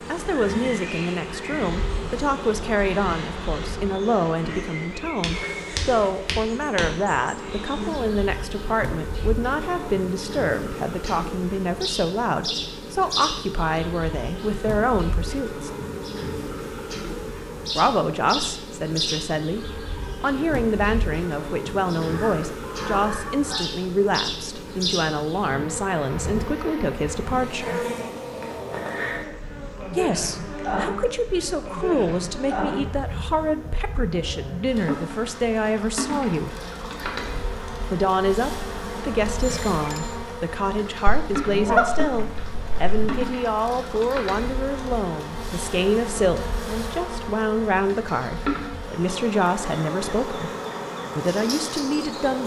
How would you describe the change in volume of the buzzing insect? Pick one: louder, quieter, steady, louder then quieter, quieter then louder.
steady.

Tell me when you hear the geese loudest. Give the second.
42 s.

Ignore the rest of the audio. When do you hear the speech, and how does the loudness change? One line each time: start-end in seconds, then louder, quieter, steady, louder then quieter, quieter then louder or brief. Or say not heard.
0.1-15.7 steady
17.8-27.9 steady
29.9-36.5 steady
37.9-50.5 steady
51.1-52.4 brief.